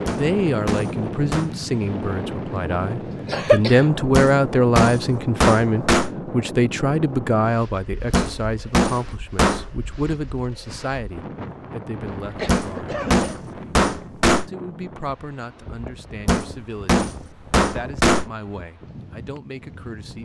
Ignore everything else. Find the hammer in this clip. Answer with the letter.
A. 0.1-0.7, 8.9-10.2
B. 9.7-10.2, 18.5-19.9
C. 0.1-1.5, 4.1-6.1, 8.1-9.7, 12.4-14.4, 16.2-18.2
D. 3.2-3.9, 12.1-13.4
C.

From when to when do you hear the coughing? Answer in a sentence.
The coughing can be heard from 3.2 to 3.9 s and from 12.1 to 13.4 s.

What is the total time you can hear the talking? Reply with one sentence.
The talking can be heard for 19 seconds in total.